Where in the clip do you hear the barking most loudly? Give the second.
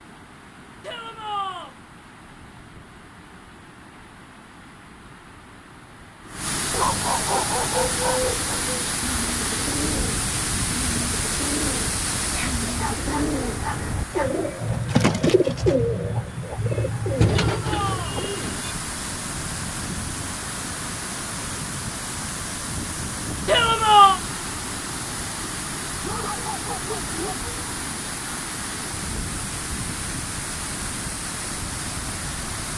7 s.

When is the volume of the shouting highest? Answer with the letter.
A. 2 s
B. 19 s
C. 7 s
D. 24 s
D.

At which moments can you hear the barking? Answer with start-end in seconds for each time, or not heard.
6.7-8.7, 12.3-14.3, 26.0-27.5.